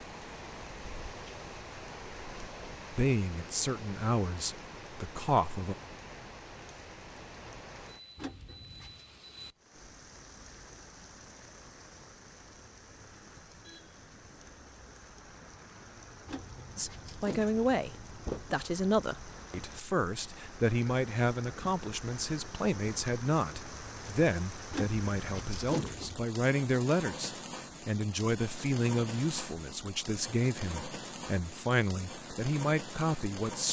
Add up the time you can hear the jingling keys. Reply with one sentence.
You can hear the jingling keys for 5 seconds altogether.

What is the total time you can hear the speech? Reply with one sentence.
The speech can be heard for 20 seconds in total.